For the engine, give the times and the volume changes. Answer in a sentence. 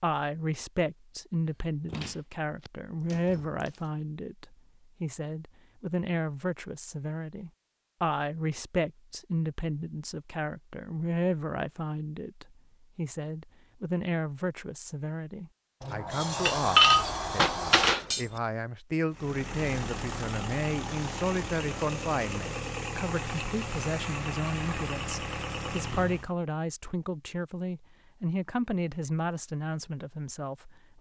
The engine can be heard from 19.1 to 26.3 s, at a steady volume.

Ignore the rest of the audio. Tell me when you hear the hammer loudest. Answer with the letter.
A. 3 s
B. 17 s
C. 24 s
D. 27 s
B.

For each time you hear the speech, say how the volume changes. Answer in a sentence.
The speech can be heard from 0.0 to 30.9 s, at a steady volume.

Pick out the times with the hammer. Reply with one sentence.
The hammer can be heard from 16.4 to 18.3 s.